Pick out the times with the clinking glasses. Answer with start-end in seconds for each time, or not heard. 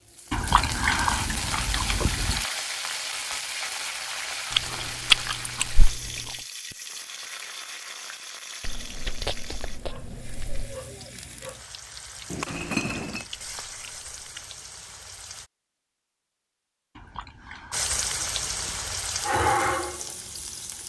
12.3-13.2.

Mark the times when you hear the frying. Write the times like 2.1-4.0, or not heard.
0.0-15.5, 17.7-20.8.